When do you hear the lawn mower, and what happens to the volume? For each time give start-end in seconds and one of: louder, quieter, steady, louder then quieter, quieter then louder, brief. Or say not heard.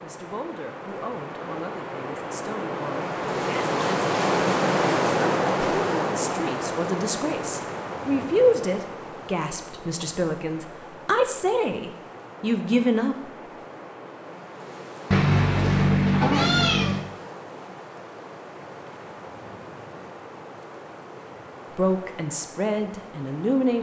not heard.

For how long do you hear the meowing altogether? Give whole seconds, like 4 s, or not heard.
2 s.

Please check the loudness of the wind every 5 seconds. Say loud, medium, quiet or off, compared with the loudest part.
loud, loud, quiet, quiet, quiet.